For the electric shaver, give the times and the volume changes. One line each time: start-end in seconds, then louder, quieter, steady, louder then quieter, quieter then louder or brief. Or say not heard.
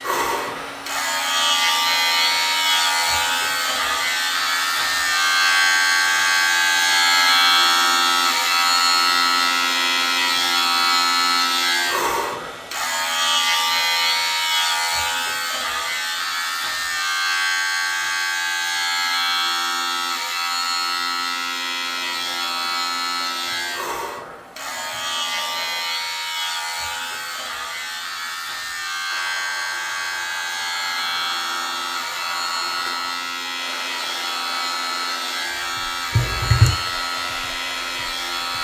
0.0-38.5 quieter.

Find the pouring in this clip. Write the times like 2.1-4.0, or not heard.
36.1-36.8.